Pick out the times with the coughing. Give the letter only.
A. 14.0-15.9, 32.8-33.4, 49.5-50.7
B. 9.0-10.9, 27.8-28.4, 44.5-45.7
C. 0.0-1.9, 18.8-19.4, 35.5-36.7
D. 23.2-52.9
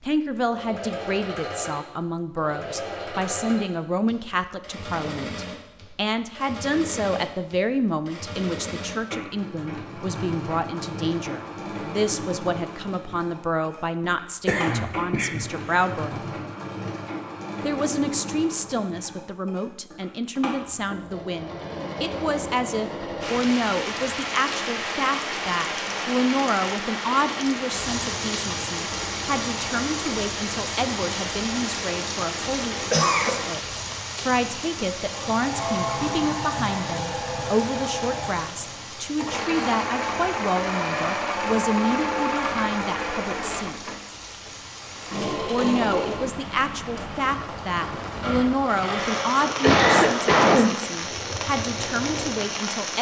A.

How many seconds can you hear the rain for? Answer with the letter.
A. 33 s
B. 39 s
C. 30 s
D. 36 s
C.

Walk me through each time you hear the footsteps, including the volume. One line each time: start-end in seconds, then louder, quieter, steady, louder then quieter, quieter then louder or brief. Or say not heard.
not heard.